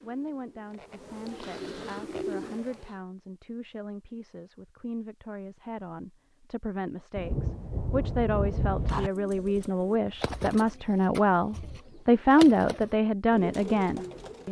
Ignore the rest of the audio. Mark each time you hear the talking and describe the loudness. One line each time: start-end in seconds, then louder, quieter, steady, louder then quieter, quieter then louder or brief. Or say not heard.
0.0-14.4 louder.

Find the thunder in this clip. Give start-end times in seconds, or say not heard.
7.2-9.1.